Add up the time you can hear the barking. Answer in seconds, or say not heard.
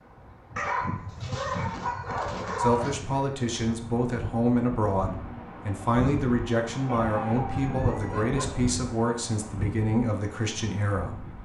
4 s.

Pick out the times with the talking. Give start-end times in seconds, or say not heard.
2.5-11.3.